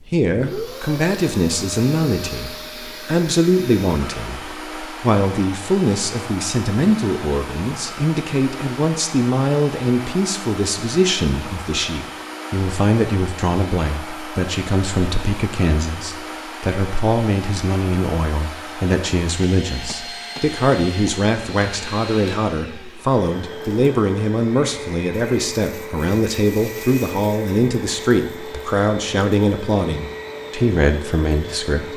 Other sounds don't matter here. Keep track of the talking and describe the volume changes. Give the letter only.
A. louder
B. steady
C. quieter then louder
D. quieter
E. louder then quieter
B.